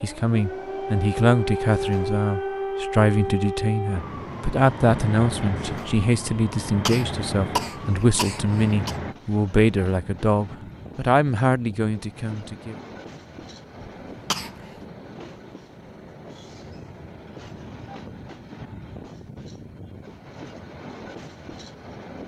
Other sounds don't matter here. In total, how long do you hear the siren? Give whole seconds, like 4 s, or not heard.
9 s.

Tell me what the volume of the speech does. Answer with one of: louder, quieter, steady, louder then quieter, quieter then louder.
steady.